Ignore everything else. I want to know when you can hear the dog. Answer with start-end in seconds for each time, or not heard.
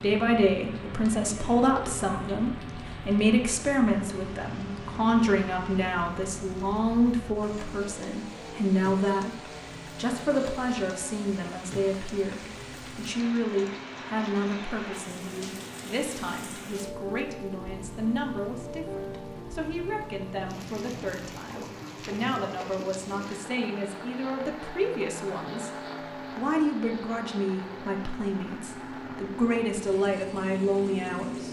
not heard.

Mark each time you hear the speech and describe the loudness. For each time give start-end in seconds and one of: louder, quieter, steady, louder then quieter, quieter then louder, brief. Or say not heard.
0.0-25.7 quieter
26.4-31.4 quieter then louder.